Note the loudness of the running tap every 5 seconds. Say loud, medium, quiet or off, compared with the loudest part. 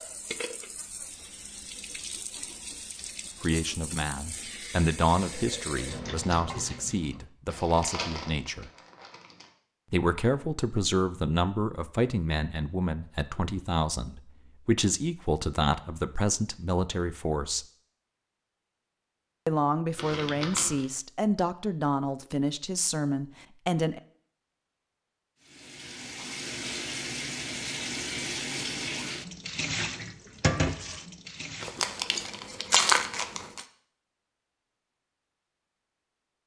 medium, medium, off, off, off, loud, loud, off.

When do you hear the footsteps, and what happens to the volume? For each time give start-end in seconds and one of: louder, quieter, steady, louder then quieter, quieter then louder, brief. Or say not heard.
not heard.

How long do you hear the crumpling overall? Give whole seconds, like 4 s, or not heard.
5 s.